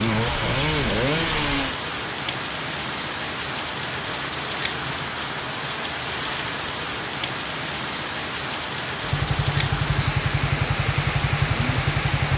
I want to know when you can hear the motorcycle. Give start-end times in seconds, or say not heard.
0.0-1.8, 9.0-12.3.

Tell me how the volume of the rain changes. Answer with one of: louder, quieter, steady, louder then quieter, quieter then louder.
steady.